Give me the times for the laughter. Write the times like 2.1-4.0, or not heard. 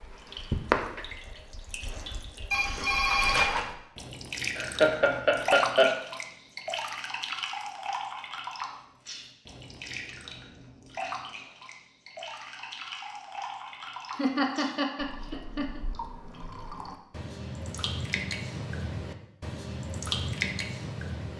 4.5-6.0, 14.2-15.8.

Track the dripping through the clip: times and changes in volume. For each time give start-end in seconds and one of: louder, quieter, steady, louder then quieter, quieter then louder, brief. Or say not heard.
0.0-21.3 quieter then louder.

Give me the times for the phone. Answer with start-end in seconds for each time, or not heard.
2.5-3.5.